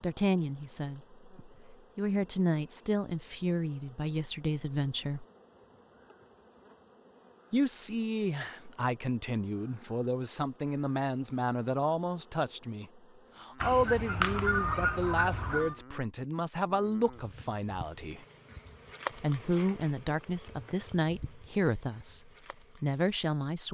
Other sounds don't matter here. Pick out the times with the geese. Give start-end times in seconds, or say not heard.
13.6-15.8.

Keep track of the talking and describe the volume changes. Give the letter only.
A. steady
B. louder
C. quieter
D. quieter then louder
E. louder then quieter
A.